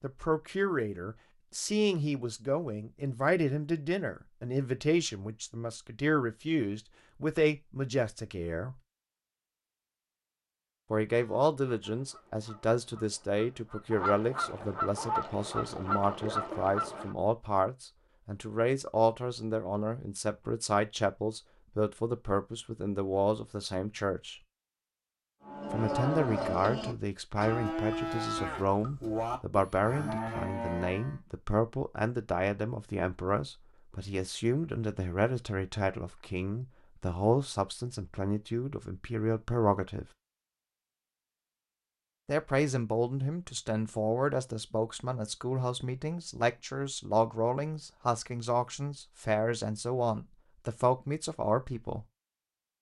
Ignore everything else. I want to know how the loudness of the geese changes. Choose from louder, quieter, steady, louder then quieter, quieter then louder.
louder.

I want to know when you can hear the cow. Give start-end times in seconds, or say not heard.
25.4-31.2.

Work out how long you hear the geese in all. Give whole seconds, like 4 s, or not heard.
6 s.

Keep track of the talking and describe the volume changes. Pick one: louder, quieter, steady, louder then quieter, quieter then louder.
steady.